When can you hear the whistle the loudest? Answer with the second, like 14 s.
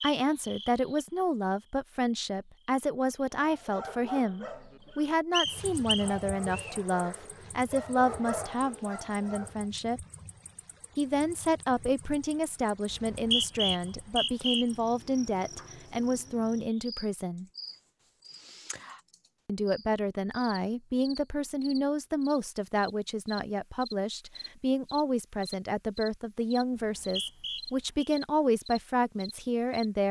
13 s.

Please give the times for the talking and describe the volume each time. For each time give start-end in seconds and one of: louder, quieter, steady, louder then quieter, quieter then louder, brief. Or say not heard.
0.0-10.0 steady
10.9-17.4 steady
19.4-30.0 steady.